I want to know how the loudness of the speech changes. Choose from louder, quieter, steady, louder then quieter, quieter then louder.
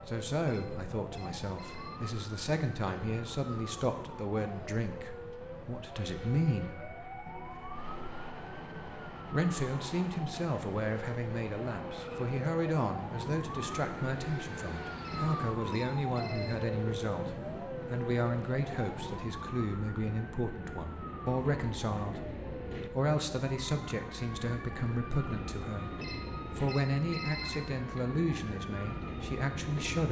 steady.